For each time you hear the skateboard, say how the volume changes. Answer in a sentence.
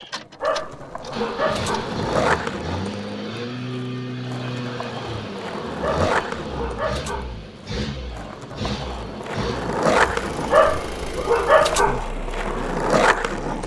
The skateboard can be heard from 0.0 to 13.6 s, getting quieter then louder.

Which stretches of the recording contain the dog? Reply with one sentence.
You can hear the dog from 0.4 to 2.0 s, from 5.8 to 7.4 s and from 10.5 to 12.1 s.